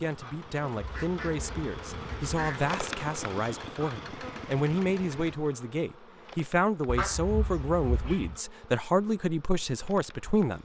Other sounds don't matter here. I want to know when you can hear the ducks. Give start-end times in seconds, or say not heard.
0.8-2.6, 6.8-8.3.